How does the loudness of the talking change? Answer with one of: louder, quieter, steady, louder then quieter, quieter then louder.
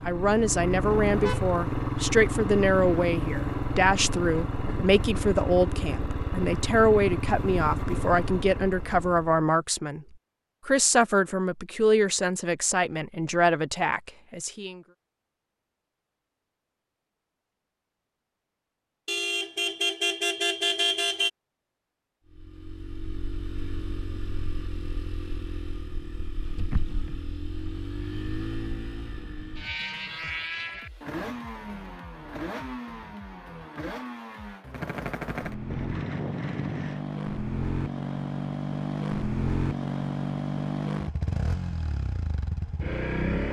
steady.